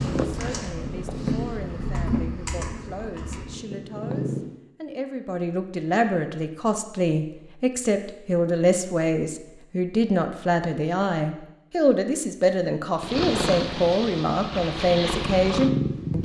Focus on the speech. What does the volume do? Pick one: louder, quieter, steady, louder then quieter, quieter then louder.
louder.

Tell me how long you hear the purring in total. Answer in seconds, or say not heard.
8 s.